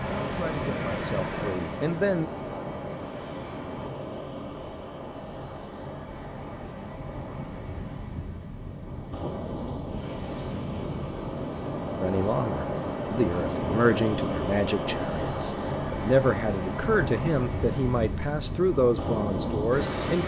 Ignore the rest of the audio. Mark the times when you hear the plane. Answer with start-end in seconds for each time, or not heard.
0.0-4.0.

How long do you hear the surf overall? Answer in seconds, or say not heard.
20 s.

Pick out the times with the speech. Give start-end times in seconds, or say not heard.
0.2-2.3, 12.0-20.2.